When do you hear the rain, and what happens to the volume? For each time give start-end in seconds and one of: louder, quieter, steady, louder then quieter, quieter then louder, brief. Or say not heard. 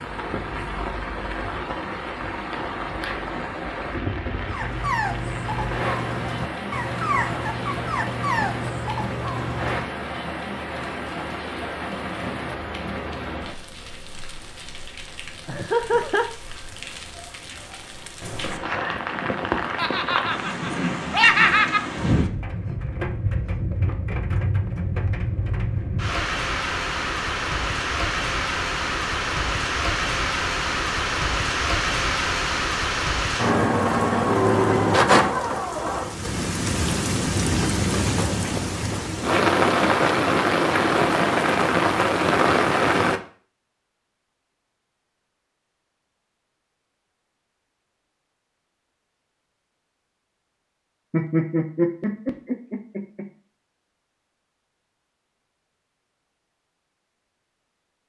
0.0-43.2 louder.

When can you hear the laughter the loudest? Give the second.
21 s.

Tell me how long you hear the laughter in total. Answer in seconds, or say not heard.
5 s.